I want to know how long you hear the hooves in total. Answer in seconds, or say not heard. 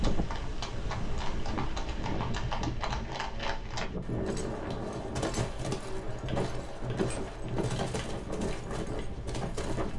10 s.